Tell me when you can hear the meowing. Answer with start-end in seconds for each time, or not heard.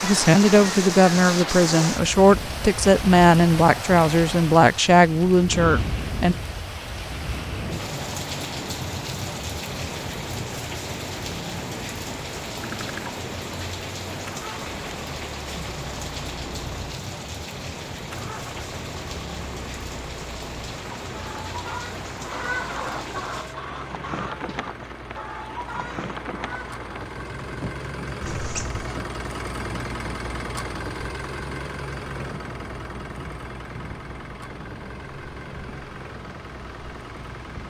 28.2-29.0.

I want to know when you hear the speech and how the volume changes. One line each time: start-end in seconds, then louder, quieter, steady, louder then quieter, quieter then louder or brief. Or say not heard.
0.0-6.3 steady.